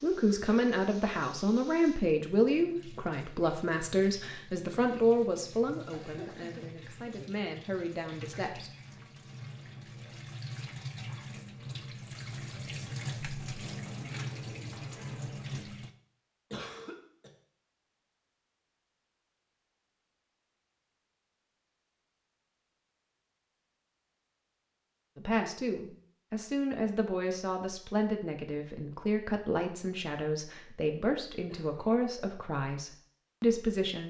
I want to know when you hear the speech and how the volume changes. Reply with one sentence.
You can hear the speech from 0.0 to 8.7 s, getting quieter; and from 25.1 to 34.0 s, at a steady volume.